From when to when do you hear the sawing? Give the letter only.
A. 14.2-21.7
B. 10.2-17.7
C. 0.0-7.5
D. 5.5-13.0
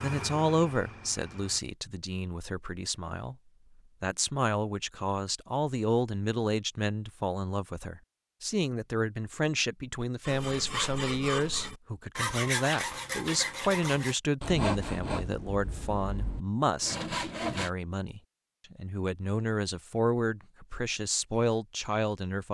B.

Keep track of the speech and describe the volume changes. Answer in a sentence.
The volume of the speech stays about the same.